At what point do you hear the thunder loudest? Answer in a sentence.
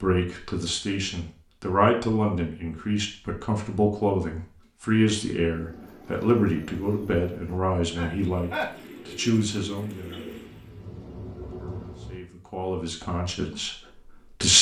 The loudest moment of the thunder is at 12 seconds.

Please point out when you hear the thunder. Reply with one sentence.
You can hear the thunder from 10.2 to 12.2 s.